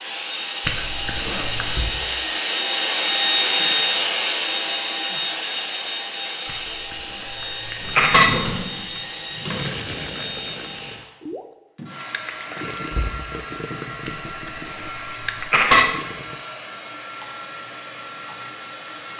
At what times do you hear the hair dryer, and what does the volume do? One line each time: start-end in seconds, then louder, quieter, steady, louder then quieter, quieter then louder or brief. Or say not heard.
0.0-19.1 quieter.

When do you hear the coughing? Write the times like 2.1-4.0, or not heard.
0.7-1.9, 6.5-8.3, 14.1-15.8.